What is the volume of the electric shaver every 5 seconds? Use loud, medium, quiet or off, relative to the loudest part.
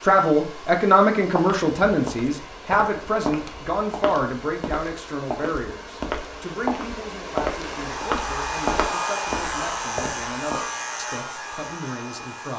off, loud, loud.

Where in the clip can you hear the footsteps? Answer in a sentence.
You can hear the footsteps from 1.4 to 10.6 s.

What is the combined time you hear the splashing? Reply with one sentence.
You can't hear the splashing here.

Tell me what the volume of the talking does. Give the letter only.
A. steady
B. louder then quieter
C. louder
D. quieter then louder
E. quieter
E.